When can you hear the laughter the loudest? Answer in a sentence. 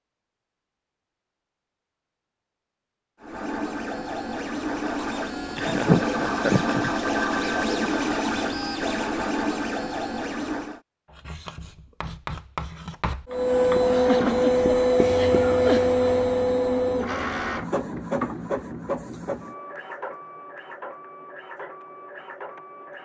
The loudest moment of the laughter is at 6 seconds.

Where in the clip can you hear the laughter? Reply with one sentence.
The laughter can be heard from 5.5 to 6.9 s and from 13.8 to 15.8 s.